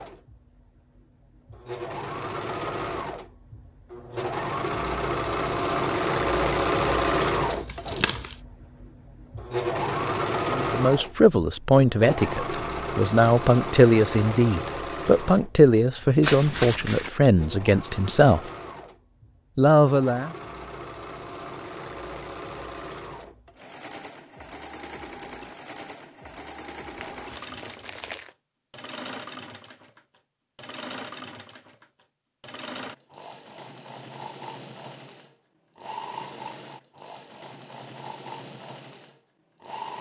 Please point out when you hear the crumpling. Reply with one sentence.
The crumpling can be heard from 7.5 to 8.3 s, from 16.2 to 17.1 s and from 26.9 to 28.3 s.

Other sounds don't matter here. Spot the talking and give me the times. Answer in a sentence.
The talking can be heard from 10.4 to 18.5 s and from 19.6 to 20.3 s.